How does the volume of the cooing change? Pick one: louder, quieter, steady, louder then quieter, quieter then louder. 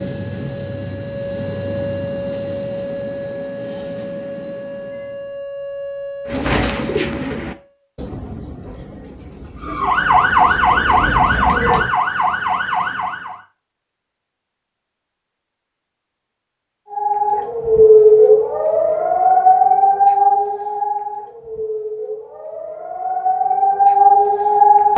quieter then louder.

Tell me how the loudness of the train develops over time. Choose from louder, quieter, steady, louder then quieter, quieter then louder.
quieter.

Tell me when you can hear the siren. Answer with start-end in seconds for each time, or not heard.
0.0-7.8, 9.6-13.4, 16.9-24.9.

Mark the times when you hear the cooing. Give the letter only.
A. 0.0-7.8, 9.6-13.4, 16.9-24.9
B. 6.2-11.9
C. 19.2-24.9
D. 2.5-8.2
B.